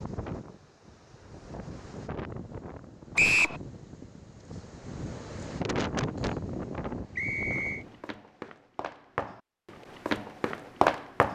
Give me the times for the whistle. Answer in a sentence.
You can hear the whistle from 3.1 to 3.6 s and from 7.2 to 7.8 s.